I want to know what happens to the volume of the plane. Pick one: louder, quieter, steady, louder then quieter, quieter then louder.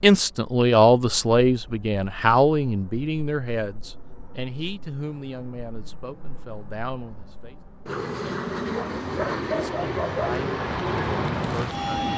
louder.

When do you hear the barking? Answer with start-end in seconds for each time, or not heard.
8.6-10.3.